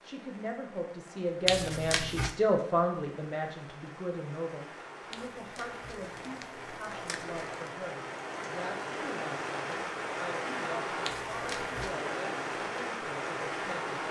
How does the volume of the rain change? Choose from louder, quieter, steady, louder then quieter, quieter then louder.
louder.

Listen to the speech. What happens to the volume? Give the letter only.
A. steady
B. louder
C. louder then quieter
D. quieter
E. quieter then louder
D.